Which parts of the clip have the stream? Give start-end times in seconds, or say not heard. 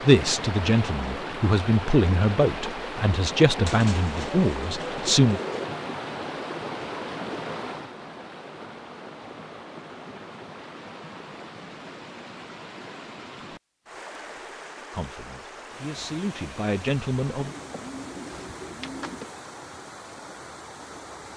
0.0-21.3.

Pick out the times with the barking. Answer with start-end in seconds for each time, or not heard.
not heard.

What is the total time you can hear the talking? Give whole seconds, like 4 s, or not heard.
8 s.